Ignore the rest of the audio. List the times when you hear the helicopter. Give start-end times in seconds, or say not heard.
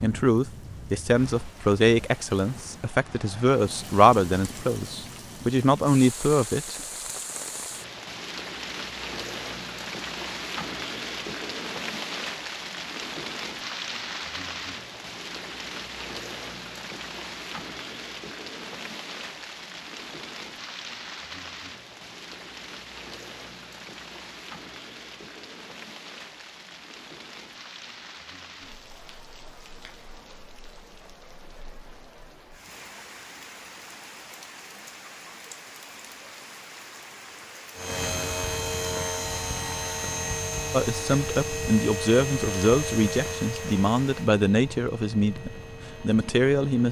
37.8-46.8.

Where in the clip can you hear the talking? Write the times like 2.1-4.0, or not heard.
0.0-6.8, 40.7-46.8.